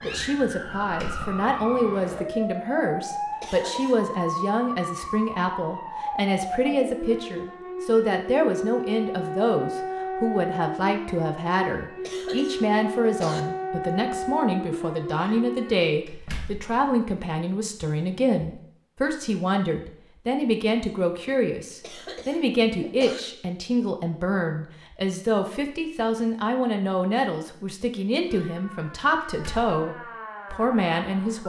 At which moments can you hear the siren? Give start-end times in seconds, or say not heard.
0.0-15.9, 28.2-31.4.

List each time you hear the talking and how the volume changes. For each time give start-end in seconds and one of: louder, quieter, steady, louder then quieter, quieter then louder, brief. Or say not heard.
0.0-31.4 steady.